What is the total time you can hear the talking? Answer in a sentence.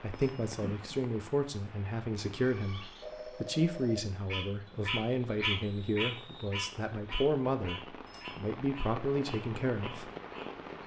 You can hear the talking for 10 seconds altogether.